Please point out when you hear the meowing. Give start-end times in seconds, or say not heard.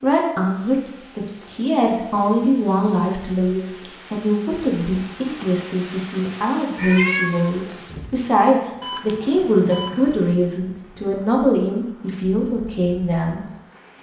6.8-7.7.